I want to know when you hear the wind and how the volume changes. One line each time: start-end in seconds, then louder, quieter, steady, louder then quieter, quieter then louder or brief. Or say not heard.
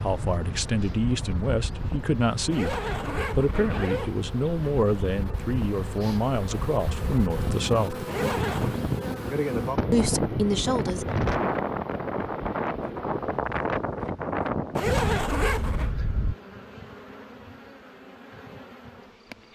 0.0-16.4 louder.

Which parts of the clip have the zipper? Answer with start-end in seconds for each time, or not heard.
2.5-4.2, 8.1-8.8, 14.8-15.9.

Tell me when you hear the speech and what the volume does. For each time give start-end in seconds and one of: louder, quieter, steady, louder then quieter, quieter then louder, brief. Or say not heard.
0.0-8.1 steady
9.9-11.1 brief.